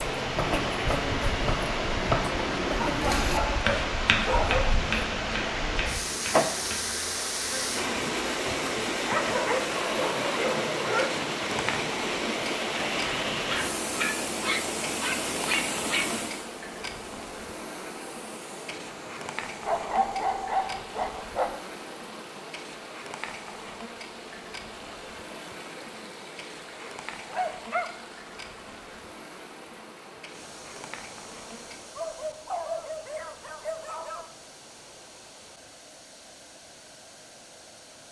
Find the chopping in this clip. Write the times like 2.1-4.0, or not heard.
0.2-6.8.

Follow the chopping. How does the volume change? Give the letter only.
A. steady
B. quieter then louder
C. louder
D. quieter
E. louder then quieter
E.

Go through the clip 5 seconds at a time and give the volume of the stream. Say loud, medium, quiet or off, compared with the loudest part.
loud, loud, loud, medium, quiet, quiet, quiet, quiet.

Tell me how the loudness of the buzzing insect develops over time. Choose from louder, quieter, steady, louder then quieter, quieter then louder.
quieter.